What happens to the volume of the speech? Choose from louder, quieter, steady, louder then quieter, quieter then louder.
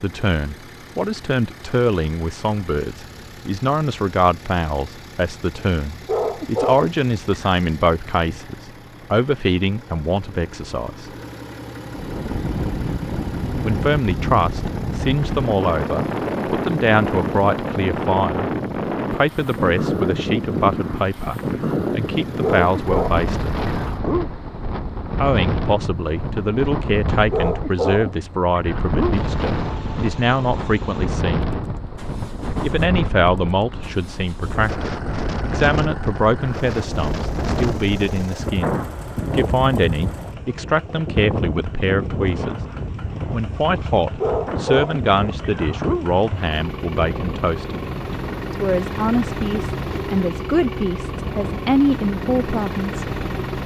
steady.